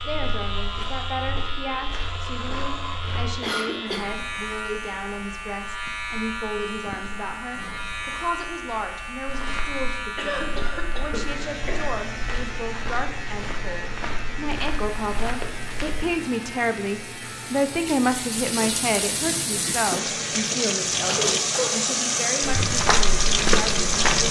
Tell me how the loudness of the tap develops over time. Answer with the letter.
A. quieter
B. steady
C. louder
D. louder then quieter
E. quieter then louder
C.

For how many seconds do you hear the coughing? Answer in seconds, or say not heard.
3 s.